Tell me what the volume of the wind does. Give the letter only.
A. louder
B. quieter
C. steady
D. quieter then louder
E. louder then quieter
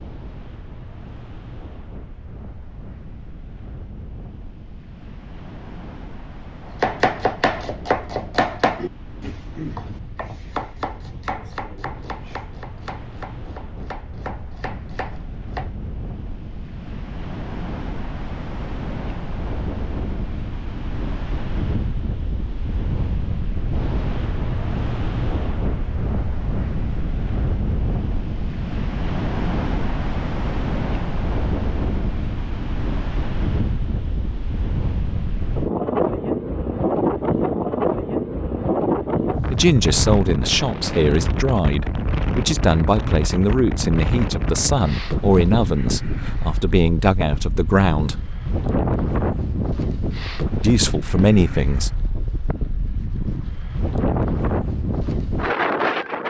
A.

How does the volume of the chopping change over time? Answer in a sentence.
The loudness of the chopping goes down.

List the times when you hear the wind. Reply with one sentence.
The wind can be heard from 0.0 to 56.2 s.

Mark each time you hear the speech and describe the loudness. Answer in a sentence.
The speech can be heard from 39.5 to 48.2 s, at a steady volume; and briefly from 50.6 to 51.9 s.